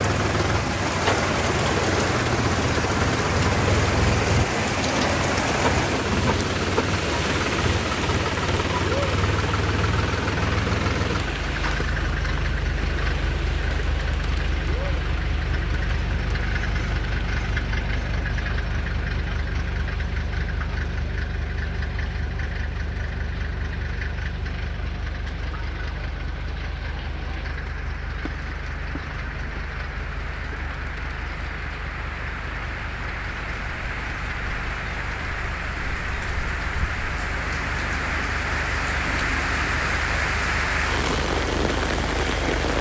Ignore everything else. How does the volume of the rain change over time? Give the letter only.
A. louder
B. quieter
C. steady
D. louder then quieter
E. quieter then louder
E.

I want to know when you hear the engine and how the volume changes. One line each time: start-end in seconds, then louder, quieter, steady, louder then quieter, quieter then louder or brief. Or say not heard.
0.0-42.7 quieter.